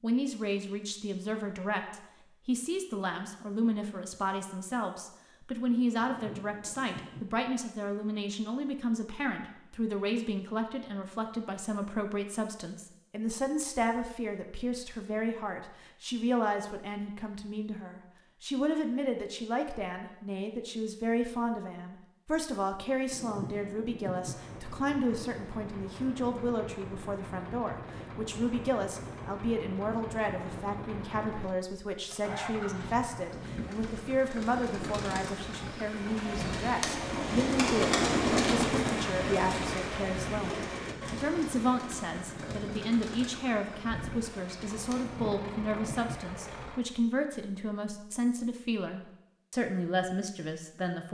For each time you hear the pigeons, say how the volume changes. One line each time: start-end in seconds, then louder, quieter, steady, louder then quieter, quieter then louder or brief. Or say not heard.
33.3-45.4 louder then quieter.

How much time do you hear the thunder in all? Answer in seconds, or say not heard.
4 s.